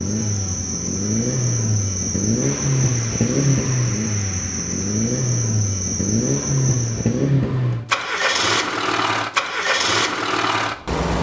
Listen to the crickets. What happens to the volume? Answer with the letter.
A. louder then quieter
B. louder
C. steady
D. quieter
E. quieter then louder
C.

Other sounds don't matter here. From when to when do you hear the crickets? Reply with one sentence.
The crickets can be heard from 0.0 to 7.3 s.